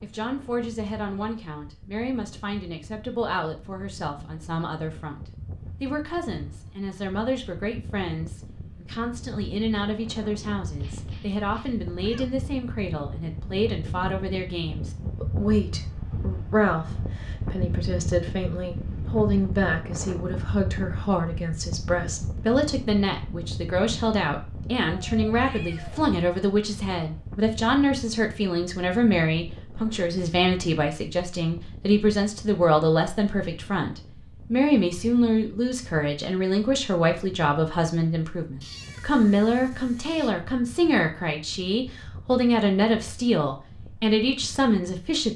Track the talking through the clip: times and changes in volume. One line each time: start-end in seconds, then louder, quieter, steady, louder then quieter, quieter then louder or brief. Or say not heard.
0.0-45.3 louder.